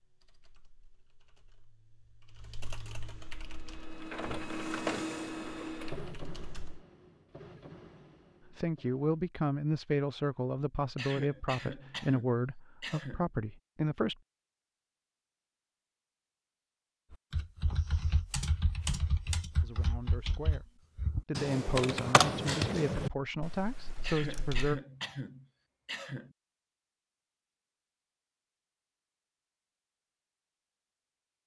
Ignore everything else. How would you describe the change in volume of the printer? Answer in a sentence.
The volume of the printer goes up, then down.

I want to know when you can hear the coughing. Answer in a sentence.
You can hear the coughing from 10.9 to 13.3 s and from 24.0 to 26.4 s.